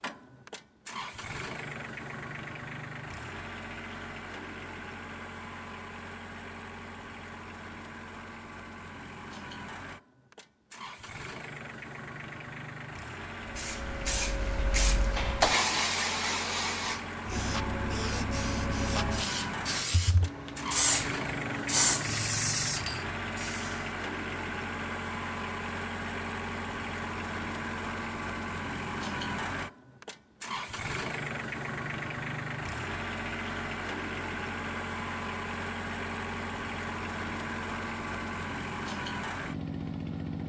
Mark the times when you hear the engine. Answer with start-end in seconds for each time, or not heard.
0.0-40.4.